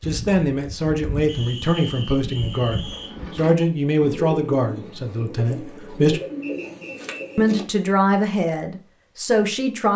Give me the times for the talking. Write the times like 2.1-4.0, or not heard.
0.0-6.2, 7.3-9.9.